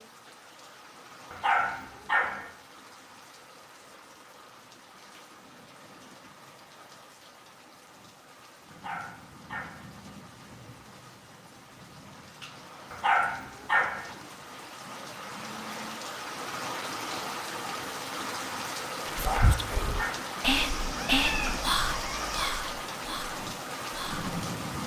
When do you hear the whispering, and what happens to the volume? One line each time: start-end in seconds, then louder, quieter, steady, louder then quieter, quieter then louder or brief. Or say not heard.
19.1-24.2 louder then quieter.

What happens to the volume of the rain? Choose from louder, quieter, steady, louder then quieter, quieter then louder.
louder.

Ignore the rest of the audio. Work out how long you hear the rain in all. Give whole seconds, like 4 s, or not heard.
25 s.